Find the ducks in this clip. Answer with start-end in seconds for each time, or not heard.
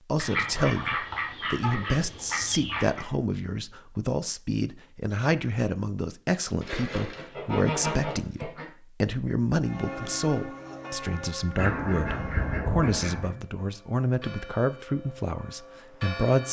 0.1-3.0, 6.6-8.7, 11.6-13.3.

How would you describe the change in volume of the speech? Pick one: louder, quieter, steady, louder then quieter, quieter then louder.
steady.